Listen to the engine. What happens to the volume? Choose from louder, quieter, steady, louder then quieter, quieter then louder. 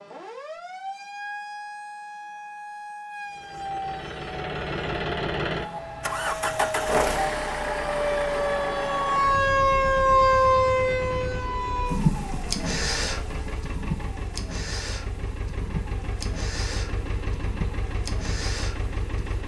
quieter.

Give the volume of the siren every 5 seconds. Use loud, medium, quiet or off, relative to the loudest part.
quiet, loud, loud, quiet.